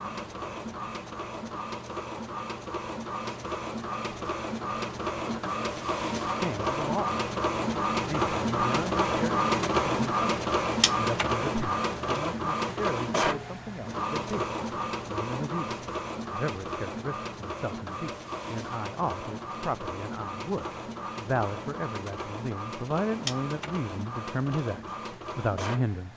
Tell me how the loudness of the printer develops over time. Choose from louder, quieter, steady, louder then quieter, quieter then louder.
louder then quieter.